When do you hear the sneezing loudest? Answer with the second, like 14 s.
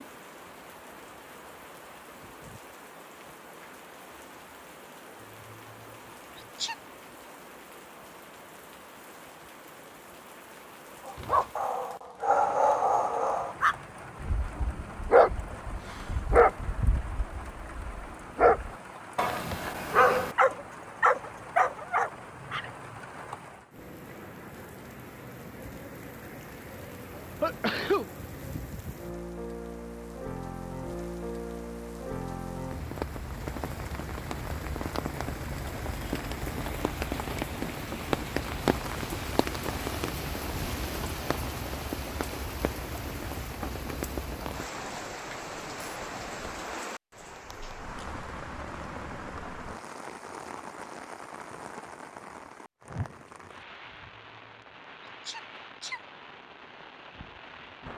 28 s.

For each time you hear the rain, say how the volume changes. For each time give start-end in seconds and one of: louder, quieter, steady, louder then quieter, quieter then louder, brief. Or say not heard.
0.0-57.9 louder then quieter.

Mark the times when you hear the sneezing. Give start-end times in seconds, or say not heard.
5.3-6.8, 27.4-28.1, 54.3-56.0.